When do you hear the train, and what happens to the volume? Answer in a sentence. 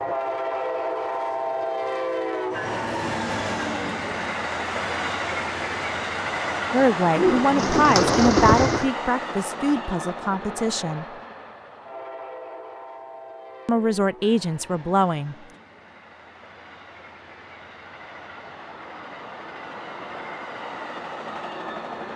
You can hear the train from 0.0 to 22.1 s, getting quieter then louder.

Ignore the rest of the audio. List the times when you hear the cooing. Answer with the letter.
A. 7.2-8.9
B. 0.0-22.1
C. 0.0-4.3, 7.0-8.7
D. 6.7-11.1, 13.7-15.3
A.